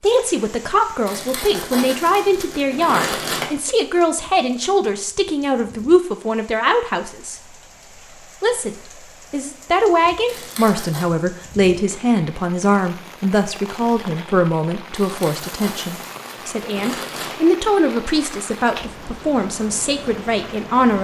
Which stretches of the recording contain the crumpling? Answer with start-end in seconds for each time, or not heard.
1.1-3.5, 10.2-11.1, 14.9-17.4.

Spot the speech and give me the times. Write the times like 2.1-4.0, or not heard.
0.0-7.4, 8.4-20.9.